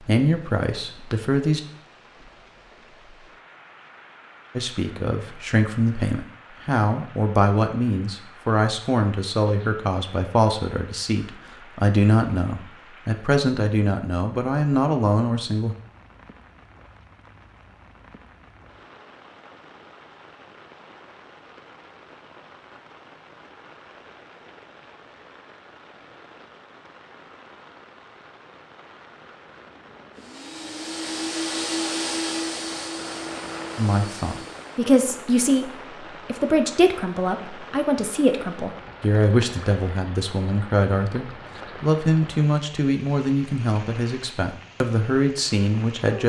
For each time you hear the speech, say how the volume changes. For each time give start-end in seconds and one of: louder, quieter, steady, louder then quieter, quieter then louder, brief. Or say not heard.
0.0-1.6 brief
4.5-15.8 steady
33.8-46.2 steady.